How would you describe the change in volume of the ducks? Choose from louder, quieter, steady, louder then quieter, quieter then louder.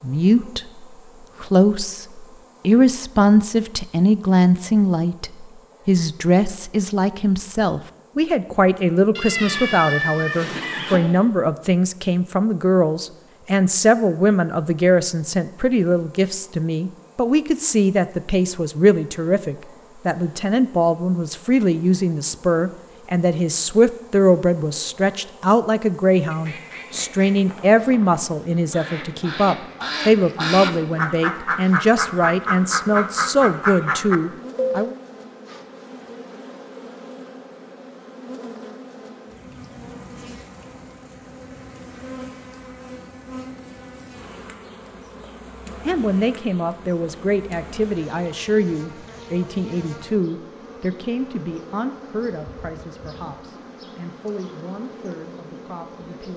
louder.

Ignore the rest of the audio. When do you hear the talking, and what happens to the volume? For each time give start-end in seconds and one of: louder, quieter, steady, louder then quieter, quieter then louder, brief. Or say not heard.
0.0-35.0 steady
45.9-56.3 quieter.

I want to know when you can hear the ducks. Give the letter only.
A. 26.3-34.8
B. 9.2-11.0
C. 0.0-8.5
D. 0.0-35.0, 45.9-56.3
A.